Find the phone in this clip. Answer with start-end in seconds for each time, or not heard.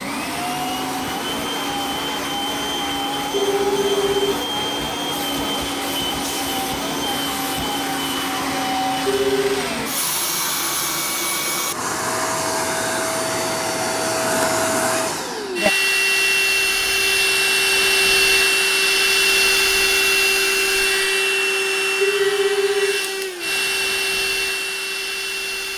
3.3-4.3, 9.1-9.7, 22.0-23.0.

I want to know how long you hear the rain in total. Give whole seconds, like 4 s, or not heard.
not heard.